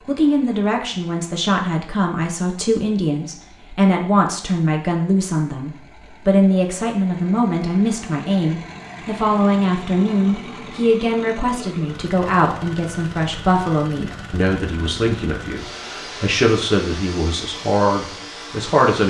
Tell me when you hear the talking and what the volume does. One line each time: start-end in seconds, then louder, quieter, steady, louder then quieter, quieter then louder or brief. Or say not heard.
0.1-19.0 steady.